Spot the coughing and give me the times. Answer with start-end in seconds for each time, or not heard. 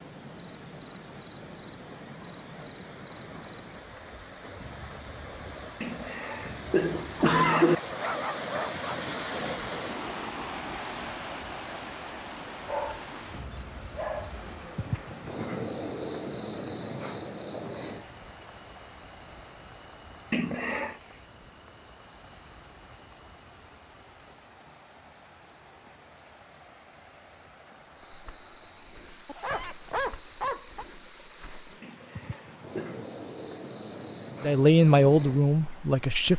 5.8-7.8, 20.3-20.9, 31.8-33.0.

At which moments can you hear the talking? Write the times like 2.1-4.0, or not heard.
34.4-36.3.